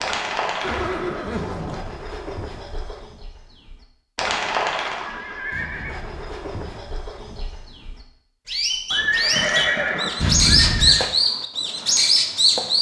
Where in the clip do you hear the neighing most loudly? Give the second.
10 s.